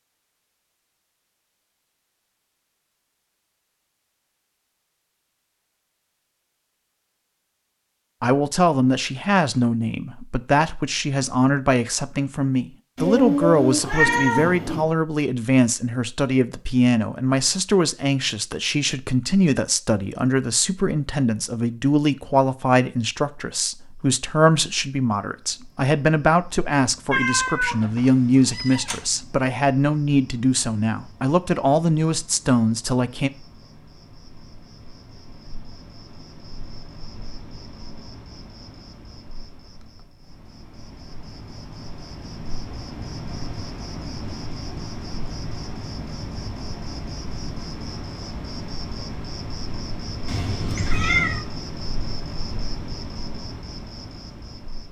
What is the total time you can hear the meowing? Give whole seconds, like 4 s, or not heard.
5 s.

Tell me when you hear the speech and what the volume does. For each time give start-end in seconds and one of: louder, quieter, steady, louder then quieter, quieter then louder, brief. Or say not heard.
8.2-33.3 steady.